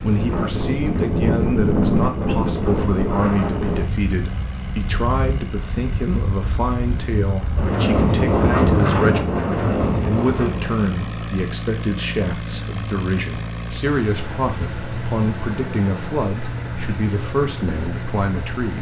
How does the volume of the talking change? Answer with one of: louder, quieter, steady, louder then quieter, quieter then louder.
steady.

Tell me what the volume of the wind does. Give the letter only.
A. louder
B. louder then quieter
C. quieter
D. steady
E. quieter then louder
E.